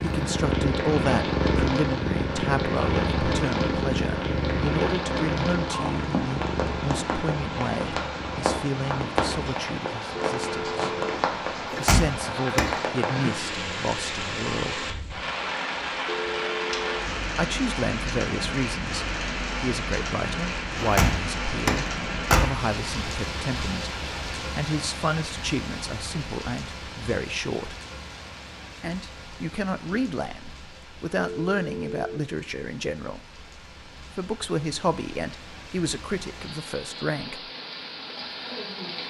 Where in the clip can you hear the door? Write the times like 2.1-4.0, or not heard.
11.7-12.8, 20.8-22.5.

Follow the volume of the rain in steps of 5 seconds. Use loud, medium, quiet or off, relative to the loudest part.
loud, loud, loud, loud, loud, medium, quiet, medium.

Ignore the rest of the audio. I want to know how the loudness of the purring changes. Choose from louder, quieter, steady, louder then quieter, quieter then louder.
quieter.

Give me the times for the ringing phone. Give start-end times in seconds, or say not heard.
10.2-11.2, 16.1-17.1, 31.1-32.2.